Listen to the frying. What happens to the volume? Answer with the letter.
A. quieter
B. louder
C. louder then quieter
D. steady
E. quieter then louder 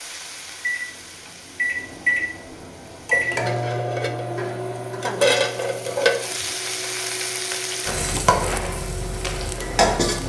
B.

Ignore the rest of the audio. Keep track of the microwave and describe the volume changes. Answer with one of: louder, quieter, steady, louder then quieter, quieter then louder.
quieter.